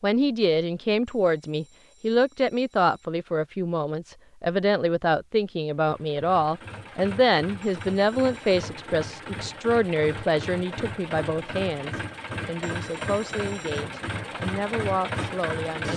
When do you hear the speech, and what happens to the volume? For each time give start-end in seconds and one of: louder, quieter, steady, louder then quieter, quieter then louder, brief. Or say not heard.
0.0-15.9 quieter.